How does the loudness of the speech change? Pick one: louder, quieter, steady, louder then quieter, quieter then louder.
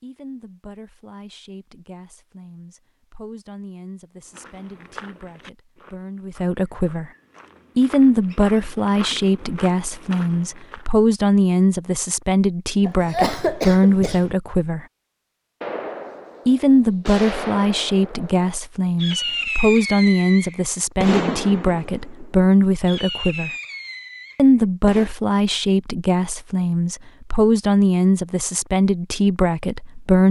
louder.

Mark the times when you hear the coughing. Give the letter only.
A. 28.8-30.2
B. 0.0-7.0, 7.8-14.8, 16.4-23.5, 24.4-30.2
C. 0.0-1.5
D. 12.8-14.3
D.